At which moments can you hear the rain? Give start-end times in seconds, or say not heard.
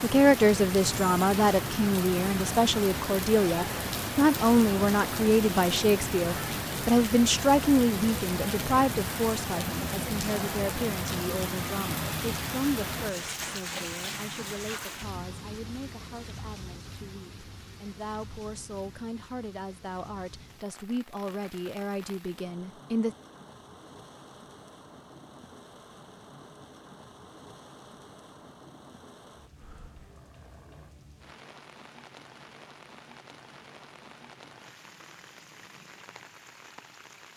0.0-37.3.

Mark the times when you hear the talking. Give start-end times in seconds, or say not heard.
0.0-23.1.